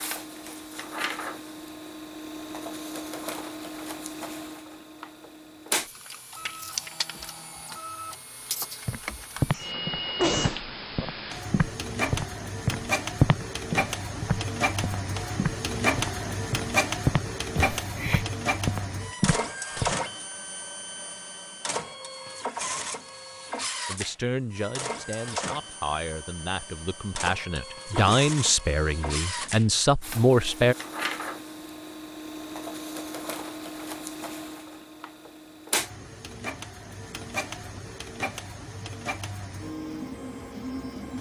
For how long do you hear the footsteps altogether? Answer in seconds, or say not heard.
11 s.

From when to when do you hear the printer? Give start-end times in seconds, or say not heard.
0.0-41.1.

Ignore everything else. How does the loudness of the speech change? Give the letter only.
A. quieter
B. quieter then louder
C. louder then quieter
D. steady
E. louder
E.